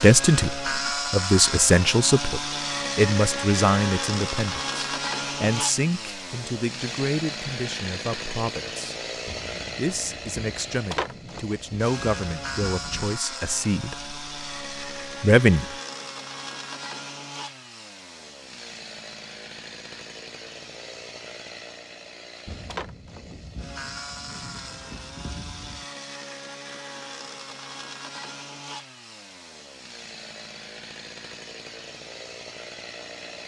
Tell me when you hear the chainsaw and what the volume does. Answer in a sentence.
You can hear the chainsaw from 0.0 to 33.4 s, getting quieter.